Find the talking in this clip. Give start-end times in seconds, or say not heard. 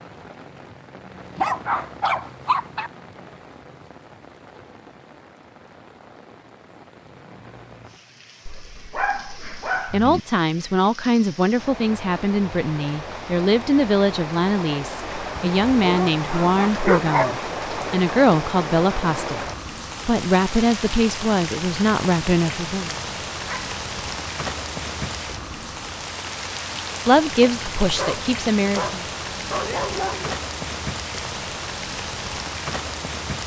9.9-19.4, 20.1-22.9, 27.1-29.0.